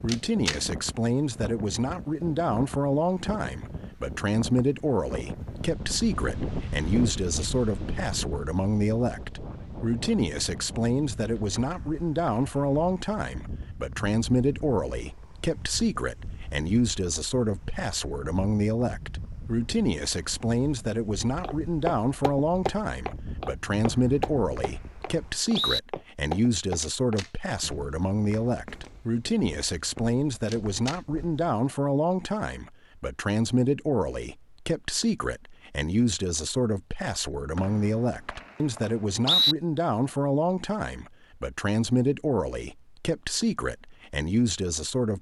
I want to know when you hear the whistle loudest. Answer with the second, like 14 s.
39 s.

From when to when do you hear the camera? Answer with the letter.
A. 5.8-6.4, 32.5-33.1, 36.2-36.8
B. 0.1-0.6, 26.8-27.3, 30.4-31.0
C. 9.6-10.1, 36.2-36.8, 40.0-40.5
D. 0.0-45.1
B.